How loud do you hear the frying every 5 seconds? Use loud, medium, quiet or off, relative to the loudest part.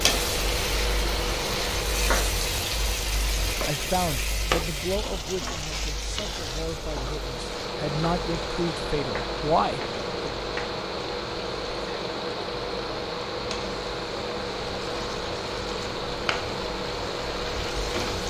loud, medium, quiet, medium.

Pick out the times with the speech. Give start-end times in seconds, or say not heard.
3.6-10.3.